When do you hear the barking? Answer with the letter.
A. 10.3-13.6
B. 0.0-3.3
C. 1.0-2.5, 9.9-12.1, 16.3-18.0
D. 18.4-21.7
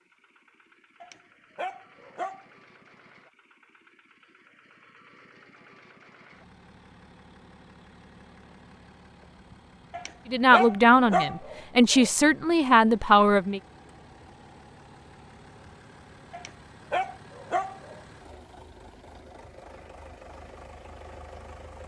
C.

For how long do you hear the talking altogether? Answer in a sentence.
The talking can be heard for 3 seconds in total.